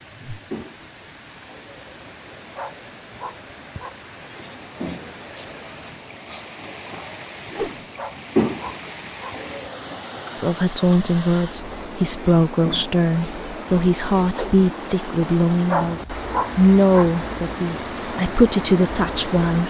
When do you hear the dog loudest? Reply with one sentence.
The loudest moment of the dog is at 16 seconds.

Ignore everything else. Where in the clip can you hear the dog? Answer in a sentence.
You can hear the dog from 2.5 to 4.0 s, from 8.0 to 9.4 s and from 15.7 to 17.1 s.